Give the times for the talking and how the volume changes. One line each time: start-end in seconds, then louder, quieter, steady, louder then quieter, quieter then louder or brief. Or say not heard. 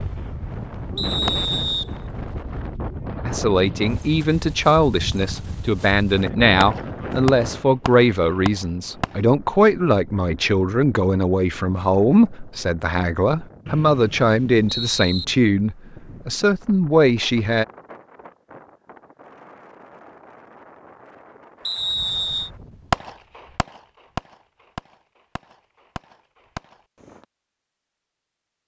3.2-17.6 steady.